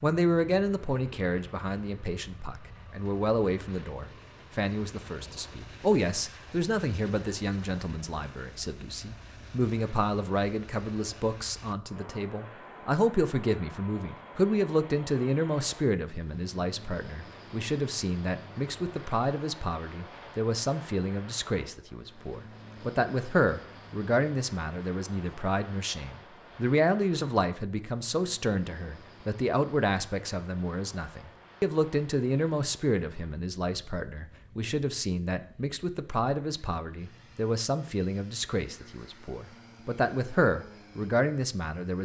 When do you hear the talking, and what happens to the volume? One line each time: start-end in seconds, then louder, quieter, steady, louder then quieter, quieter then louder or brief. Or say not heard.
0.0-41.9 steady.